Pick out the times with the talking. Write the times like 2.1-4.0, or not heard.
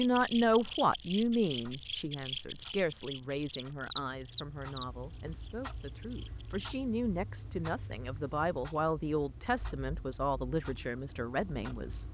0.0-12.0.